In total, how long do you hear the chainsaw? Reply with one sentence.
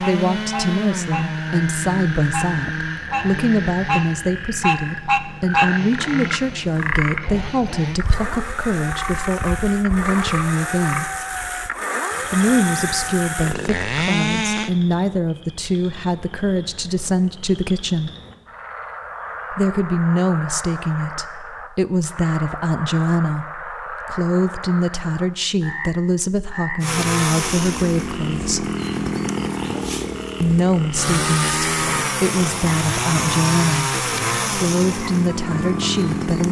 You can hear the chainsaw for 24 seconds altogether.